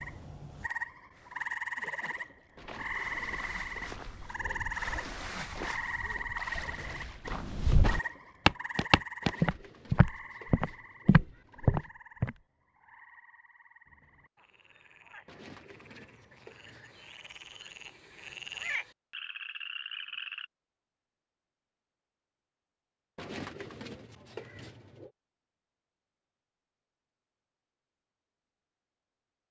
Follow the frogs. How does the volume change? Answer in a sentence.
The loudness of the frogs goes down, then up.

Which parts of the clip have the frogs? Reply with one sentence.
The frogs can be heard from 0.0 to 20.4 s.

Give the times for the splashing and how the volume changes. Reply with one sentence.
You can hear the splashing from 1.1 to 8.9 s, getting louder then quieter.